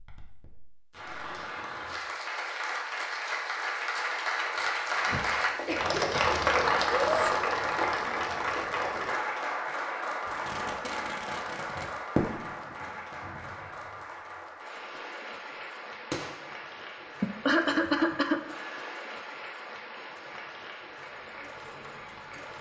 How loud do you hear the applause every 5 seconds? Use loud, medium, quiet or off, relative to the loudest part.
medium, loud, medium, quiet, quiet.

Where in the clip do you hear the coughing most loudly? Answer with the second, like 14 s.
18 s.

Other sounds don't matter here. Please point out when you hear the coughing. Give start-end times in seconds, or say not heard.
4.5-6.2, 17.2-18.9.